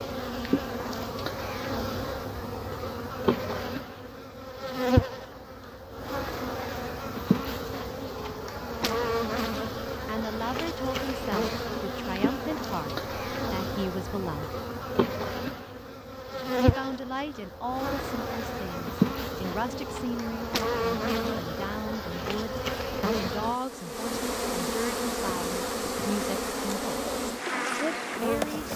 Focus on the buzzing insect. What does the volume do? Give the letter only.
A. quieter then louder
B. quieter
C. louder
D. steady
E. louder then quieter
D.